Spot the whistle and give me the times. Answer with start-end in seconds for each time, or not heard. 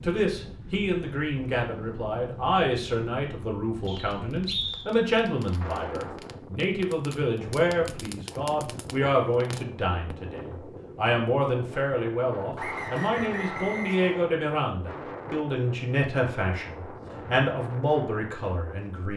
3.9-4.8, 12.6-14.2.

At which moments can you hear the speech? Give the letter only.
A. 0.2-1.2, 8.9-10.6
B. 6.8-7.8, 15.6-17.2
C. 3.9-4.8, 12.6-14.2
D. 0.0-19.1
D.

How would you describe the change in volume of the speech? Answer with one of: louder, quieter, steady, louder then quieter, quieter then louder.
steady.